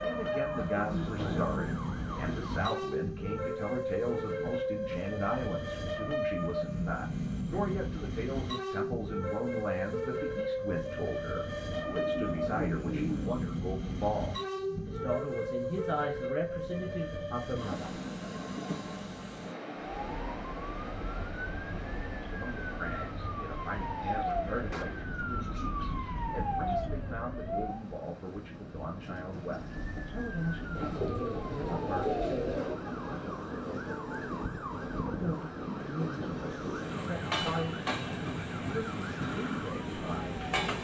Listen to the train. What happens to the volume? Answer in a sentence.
The loudness of the train goes down, then up.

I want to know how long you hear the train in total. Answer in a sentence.
The train can be heard for 41 seconds in total.